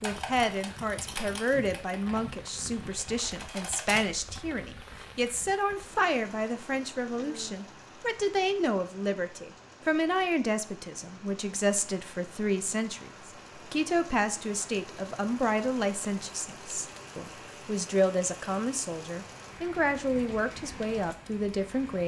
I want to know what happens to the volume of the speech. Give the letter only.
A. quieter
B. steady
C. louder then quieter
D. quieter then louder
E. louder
B.